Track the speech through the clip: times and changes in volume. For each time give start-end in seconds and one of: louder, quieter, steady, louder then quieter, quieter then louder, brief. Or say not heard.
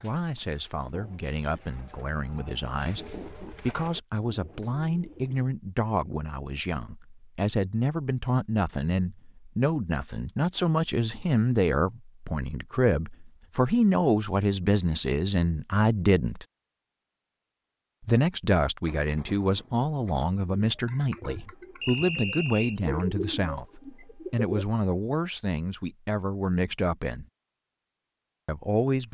0.0-16.4 louder
18.0-27.2 steady
28.4-29.0 brief.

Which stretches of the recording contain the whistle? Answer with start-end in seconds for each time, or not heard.
21.8-22.8.